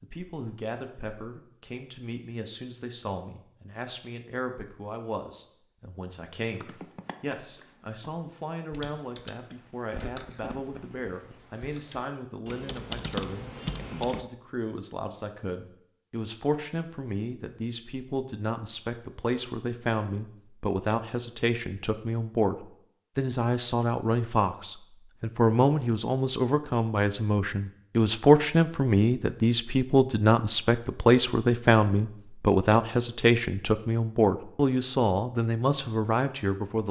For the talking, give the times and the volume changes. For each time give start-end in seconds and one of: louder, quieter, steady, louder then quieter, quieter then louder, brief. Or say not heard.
0.0-36.8 louder.